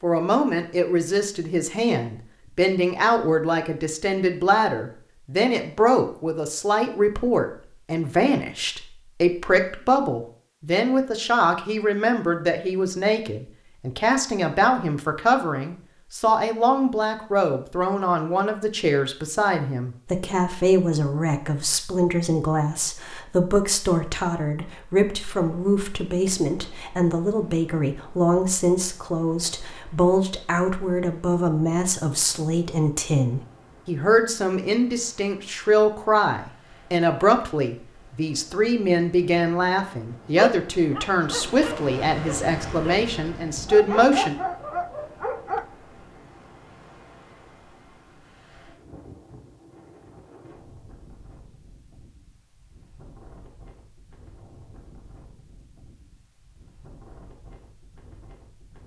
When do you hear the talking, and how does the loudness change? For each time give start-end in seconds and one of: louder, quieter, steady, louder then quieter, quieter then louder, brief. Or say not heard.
0.0-44.4 steady.